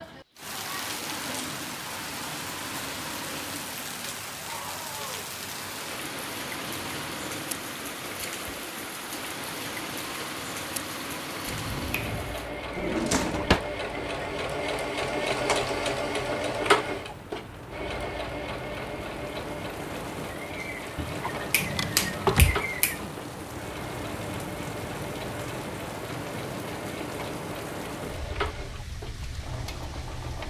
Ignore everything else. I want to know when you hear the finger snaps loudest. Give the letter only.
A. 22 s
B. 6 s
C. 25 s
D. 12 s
A.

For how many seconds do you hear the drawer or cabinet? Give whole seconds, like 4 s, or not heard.
2 s.